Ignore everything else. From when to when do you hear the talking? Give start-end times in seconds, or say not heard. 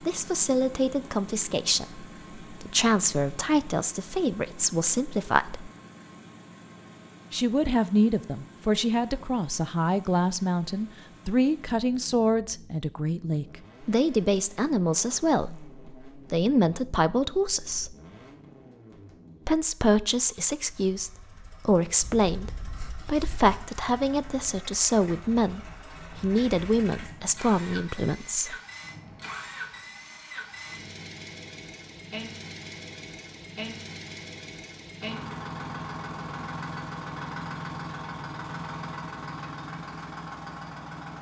0.1-5.7, 7.3-17.9, 19.4-28.6.